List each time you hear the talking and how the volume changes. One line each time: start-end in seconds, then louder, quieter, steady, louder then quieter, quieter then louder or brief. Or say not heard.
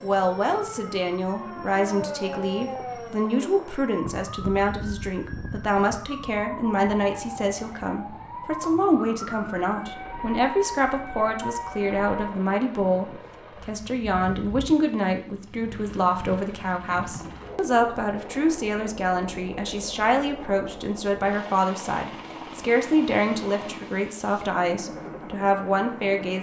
0.0-26.3 steady.